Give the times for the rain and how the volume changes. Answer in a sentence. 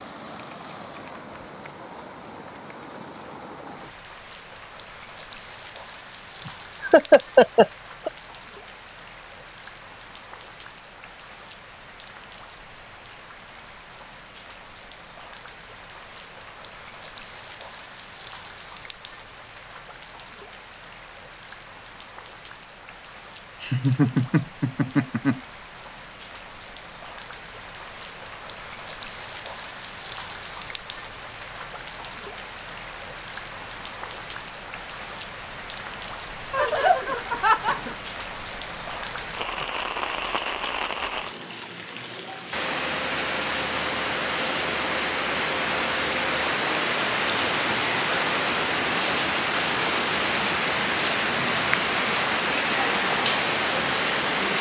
The rain can be heard from 0.0 to 54.5 s, getting louder.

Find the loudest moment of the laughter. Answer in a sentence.
The volume of the laughter peaks at 7 seconds.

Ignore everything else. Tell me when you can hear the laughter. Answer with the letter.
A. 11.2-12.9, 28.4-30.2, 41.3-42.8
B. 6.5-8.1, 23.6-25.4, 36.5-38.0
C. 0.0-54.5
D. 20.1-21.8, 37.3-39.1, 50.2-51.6
B.